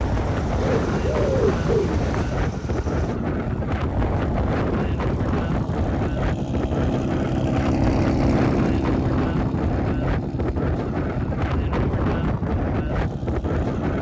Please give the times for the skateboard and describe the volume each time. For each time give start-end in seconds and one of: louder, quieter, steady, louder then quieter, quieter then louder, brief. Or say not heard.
not heard.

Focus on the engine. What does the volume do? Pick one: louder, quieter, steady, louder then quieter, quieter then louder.
louder then quieter.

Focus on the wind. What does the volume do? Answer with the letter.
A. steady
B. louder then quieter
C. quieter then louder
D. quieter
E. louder
A.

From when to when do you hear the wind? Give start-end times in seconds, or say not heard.
0.0-13.9.